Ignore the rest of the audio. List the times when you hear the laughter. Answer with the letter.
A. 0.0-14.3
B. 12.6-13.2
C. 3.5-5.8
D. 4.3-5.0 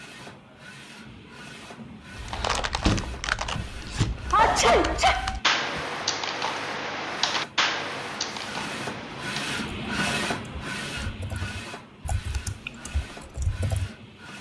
D.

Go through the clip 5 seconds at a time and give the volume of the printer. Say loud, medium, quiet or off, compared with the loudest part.
medium, loud, loud.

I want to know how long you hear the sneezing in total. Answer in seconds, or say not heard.
2 s.